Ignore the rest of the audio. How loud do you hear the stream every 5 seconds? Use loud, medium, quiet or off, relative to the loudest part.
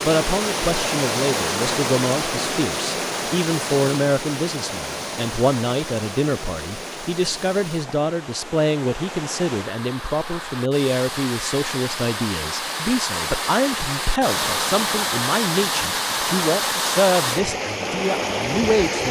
loud, medium, loud, loud.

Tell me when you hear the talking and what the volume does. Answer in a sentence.
The talking can be heard from 0.0 to 19.0 s, at a steady volume.